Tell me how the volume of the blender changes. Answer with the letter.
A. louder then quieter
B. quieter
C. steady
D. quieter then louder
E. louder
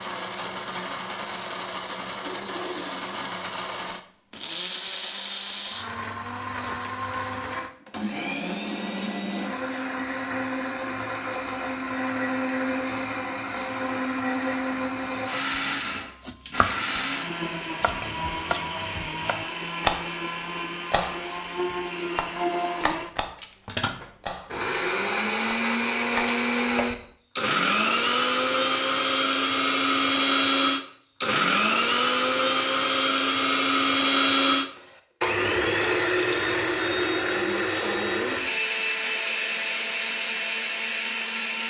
E.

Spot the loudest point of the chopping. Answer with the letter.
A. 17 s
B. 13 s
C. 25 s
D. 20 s
D.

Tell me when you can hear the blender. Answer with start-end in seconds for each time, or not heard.
0.0-41.6.